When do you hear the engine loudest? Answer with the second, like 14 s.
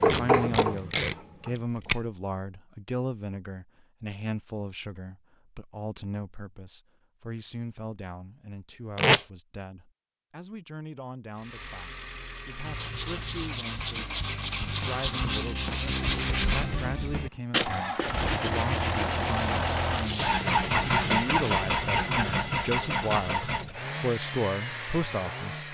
21 s.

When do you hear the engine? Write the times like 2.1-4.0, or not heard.
11.3-25.6.